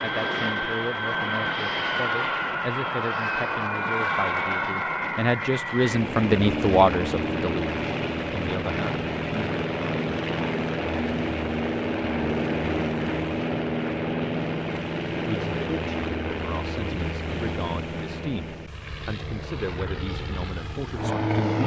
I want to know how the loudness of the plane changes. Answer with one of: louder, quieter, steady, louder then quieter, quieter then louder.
quieter.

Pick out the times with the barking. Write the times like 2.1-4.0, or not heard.
not heard.